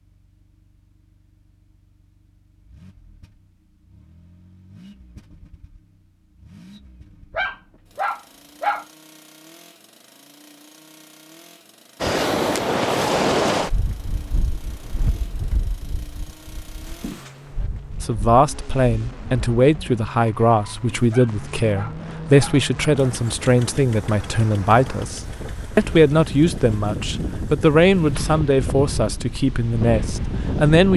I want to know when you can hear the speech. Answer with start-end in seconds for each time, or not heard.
18.0-30.9.